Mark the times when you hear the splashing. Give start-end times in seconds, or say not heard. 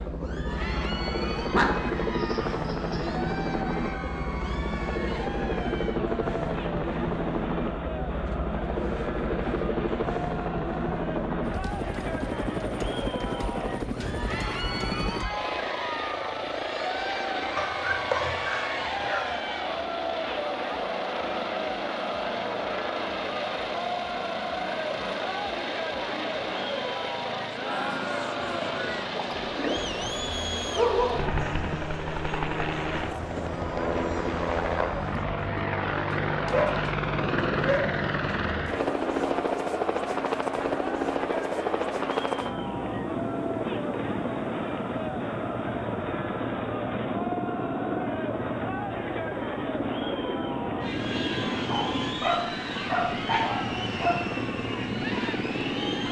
29.1-29.9.